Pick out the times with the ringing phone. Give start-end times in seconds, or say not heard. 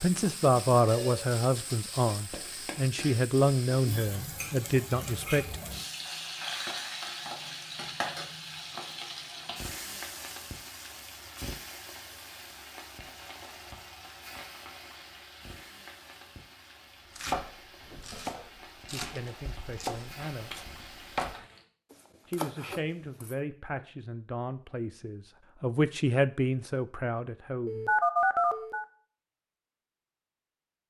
0.8-1.3, 27.6-28.9.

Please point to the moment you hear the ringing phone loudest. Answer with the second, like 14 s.
28 s.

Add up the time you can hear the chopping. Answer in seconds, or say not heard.
6 s.